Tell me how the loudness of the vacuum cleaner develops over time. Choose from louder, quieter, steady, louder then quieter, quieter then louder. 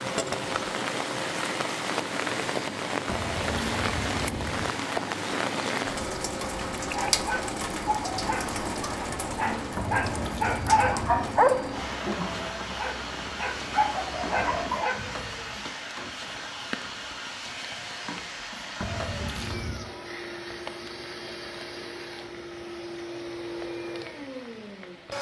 steady.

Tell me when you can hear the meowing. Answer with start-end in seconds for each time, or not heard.
3.0-4.7, 9.8-11.4, 18.8-19.9.